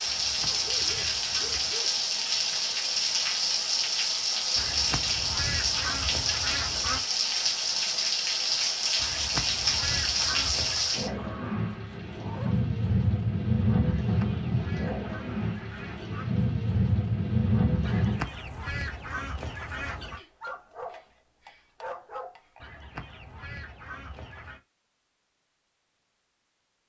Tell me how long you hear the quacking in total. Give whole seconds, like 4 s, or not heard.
13 s.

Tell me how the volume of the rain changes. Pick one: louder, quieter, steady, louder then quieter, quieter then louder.
steady.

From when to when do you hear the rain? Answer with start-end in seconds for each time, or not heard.
0.0-18.2.